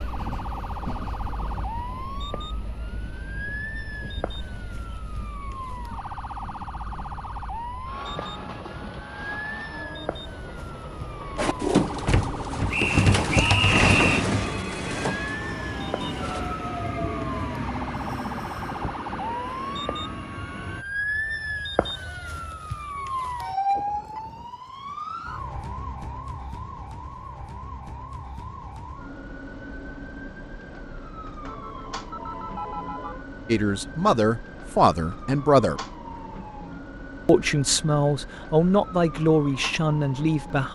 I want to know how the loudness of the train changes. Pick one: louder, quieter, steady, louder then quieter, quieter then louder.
louder.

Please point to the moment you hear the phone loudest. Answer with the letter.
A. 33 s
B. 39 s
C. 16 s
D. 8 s
A.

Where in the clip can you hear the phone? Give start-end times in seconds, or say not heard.
14.6-15.4, 31.4-33.2.